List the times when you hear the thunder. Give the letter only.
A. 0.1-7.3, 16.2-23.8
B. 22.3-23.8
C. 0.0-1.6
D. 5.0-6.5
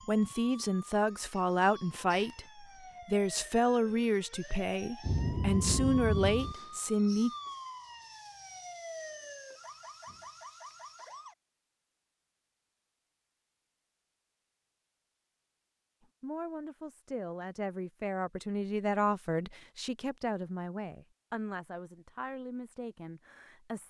D.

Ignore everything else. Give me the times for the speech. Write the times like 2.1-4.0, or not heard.
0.1-7.3, 16.2-23.8.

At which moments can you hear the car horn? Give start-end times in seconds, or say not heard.
not heard.